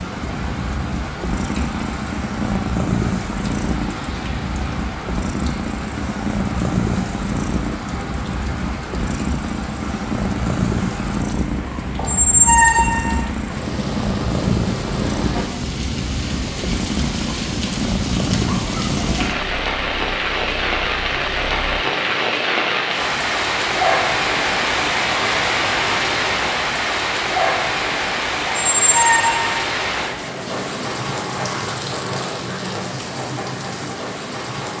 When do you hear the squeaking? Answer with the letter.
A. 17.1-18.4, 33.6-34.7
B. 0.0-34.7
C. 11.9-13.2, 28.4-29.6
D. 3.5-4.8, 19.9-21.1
C.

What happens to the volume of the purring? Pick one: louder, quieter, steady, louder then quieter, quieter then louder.
steady.